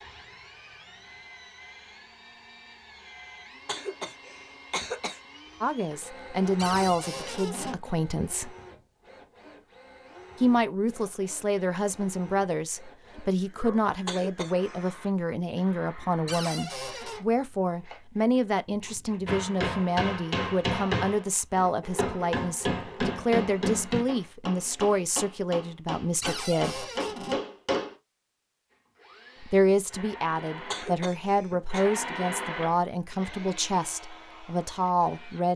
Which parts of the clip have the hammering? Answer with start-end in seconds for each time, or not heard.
19.2-27.9.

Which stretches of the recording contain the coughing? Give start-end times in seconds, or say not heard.
3.6-5.2, 14.1-14.9, 30.7-31.9.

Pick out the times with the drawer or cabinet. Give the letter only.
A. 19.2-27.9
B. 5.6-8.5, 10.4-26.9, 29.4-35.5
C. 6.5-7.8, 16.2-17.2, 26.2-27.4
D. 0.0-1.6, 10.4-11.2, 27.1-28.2
C.